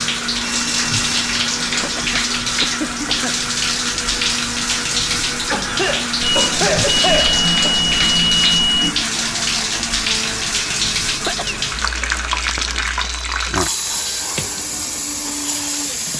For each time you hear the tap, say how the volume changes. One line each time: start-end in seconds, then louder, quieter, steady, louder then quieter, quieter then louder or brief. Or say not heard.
0.0-16.1 steady.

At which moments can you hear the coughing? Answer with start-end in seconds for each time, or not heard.
1.8-3.4, 5.5-7.8, 11.2-12.1.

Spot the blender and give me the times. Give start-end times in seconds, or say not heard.
0.0-16.1.